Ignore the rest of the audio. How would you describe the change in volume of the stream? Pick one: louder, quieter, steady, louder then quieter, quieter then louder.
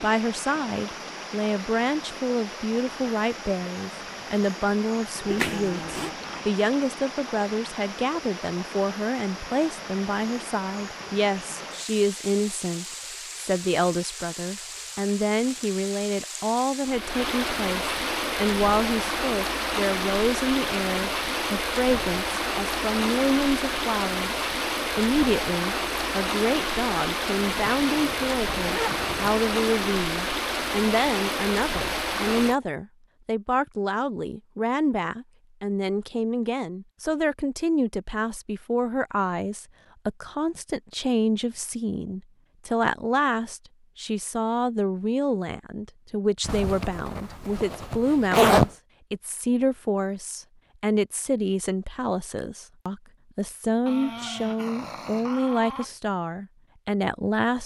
louder.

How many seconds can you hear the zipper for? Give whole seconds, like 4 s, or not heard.
5 s.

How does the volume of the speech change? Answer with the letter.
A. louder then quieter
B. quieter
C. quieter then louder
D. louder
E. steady
E.